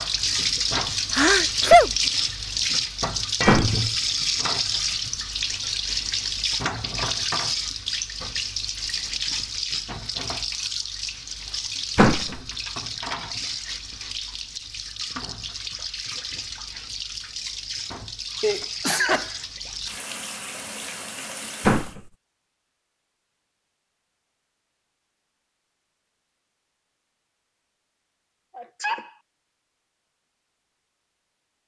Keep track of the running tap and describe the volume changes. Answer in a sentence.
The loudness of the running tap goes down.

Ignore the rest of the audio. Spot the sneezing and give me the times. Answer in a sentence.
The sneezing can be heard from 1.1 to 1.9 s, from 18.4 to 19.3 s and from 28.6 to 29.1 s.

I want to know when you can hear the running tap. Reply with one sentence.
You can hear the running tap from 0.0 to 21.9 s.